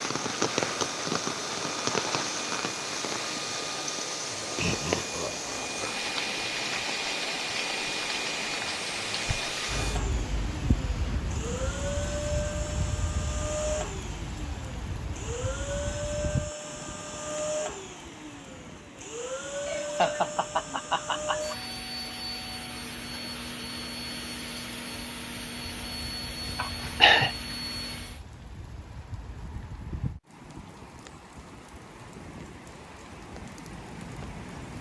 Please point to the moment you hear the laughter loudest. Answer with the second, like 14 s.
27 s.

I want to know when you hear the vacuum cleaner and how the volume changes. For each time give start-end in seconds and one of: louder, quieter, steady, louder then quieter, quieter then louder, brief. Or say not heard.
0.0-28.2 steady.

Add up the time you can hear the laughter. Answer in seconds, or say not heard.
4 s.